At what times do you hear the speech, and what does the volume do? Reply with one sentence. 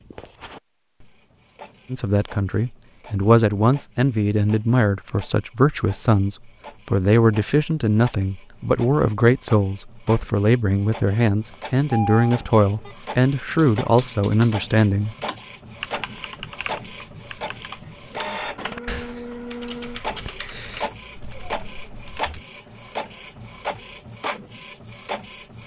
You can hear the speech from 1.9 to 15.2 s, at a steady volume.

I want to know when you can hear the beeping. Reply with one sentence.
The beeping can be heard from 11.5 to 12.9 s.